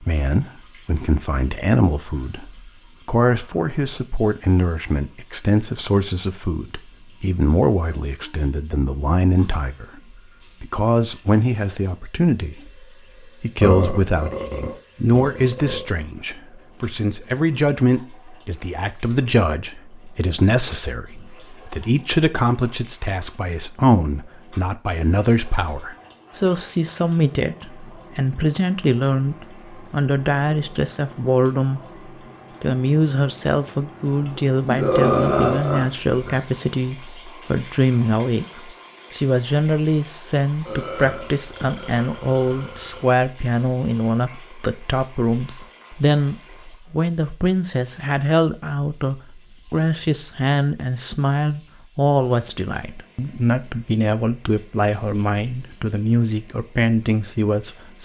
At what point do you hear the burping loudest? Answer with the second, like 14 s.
35 s.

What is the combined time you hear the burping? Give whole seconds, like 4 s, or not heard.
6 s.